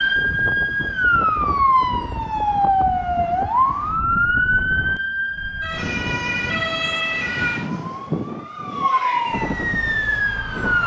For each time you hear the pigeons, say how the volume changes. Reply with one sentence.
The pigeons can't be heard in this clip.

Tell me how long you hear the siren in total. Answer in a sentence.
You can hear the siren for 11 seconds altogether.